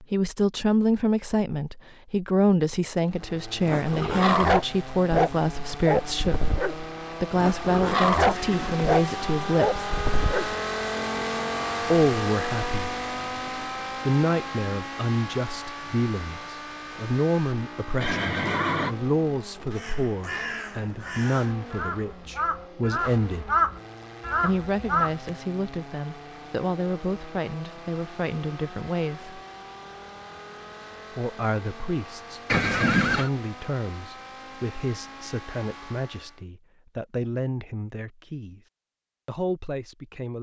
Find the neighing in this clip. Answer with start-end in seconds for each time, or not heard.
8.3-9.4, 18.0-18.9, 32.5-33.3.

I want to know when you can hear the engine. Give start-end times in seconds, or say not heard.
2.9-36.5.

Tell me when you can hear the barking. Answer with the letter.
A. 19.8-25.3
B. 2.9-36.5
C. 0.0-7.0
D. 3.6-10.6
D.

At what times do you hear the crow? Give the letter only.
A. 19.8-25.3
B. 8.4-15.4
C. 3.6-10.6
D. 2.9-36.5
A.